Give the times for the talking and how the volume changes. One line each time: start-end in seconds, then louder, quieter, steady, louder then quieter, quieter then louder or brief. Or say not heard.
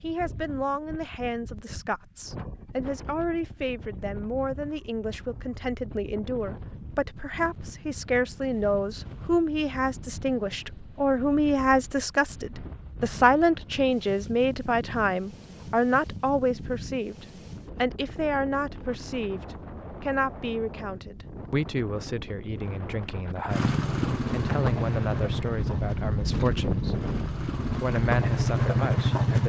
0.0-29.4 louder then quieter.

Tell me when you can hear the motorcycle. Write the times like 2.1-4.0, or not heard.
23.4-29.4.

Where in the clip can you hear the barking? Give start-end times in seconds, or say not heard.
not heard.